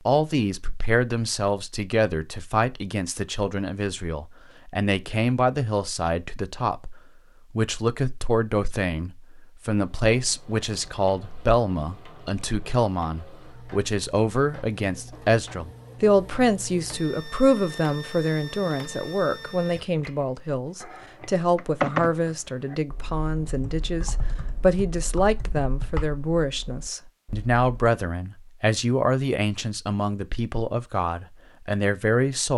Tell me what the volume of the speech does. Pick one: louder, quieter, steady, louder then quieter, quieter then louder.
steady.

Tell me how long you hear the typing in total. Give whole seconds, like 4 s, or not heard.
7 s.